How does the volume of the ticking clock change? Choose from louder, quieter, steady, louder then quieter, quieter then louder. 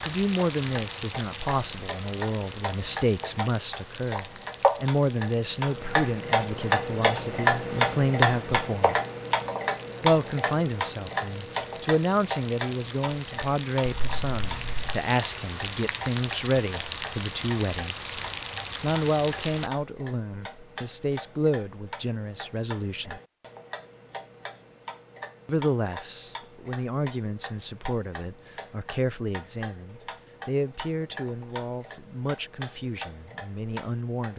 quieter.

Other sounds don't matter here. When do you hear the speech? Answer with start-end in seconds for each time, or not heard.
0.0-8.9, 10.0-18.1, 18.8-23.2, 25.4-34.3.